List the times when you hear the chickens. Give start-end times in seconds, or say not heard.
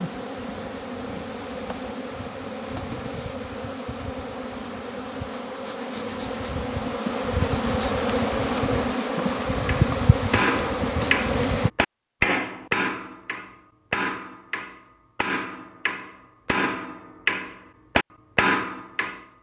not heard.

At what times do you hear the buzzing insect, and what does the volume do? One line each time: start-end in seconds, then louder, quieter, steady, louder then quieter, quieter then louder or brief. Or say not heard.
0.0-11.7 louder.